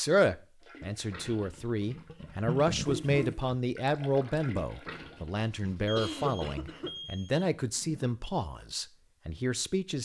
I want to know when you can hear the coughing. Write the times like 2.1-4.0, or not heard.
2.9-3.5, 5.5-6.9.